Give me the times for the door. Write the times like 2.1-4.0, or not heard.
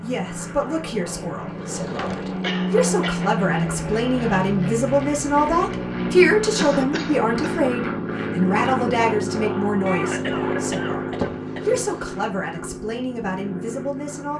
1.4-2.5, 11.2-12.2.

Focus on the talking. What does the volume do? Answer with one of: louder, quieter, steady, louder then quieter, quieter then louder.
louder then quieter.